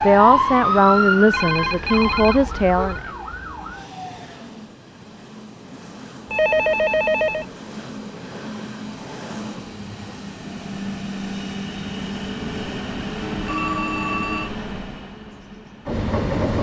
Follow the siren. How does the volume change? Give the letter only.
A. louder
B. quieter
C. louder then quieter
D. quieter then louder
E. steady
B.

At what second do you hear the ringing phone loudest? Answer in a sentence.
The volume of the ringing phone peaks at 7 seconds.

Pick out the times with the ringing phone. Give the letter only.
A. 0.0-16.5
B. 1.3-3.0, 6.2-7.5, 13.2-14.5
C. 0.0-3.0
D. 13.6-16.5
B.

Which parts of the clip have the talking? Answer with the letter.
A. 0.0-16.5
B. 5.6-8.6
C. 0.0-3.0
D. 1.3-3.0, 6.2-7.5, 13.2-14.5
C.